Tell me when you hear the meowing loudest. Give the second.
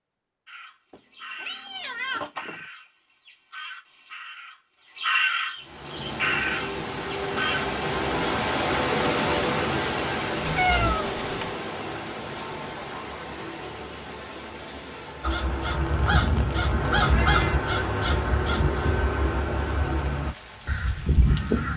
11 s.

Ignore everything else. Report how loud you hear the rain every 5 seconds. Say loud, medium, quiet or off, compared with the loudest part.
off, loud, medium, quiet, quiet.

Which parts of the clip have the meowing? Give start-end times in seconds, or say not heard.
0.9-2.6, 10.4-11.6, 16.8-17.6.